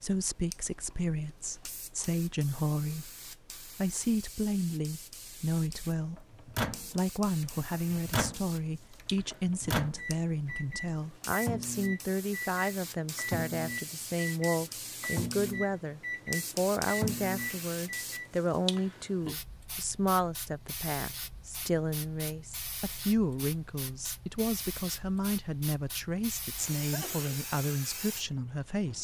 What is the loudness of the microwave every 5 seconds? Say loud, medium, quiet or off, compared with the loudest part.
off, loud, loud, loud, off, off.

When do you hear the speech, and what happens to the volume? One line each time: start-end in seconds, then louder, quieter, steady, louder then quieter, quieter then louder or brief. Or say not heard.
0.0-28.9 steady.